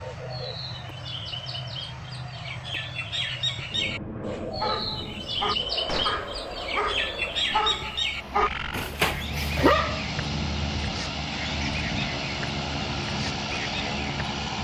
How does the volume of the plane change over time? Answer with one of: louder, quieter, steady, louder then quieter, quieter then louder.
louder.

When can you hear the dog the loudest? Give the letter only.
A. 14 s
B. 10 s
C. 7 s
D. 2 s
B.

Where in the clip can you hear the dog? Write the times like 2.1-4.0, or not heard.
4.5-10.1.